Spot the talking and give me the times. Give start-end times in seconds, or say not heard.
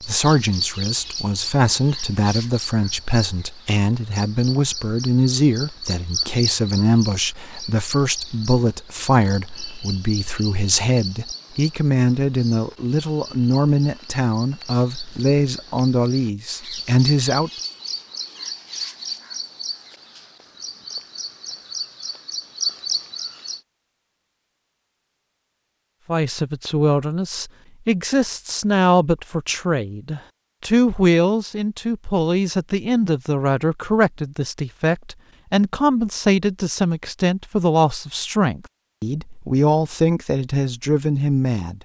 0.1-17.5, 26.1-41.7.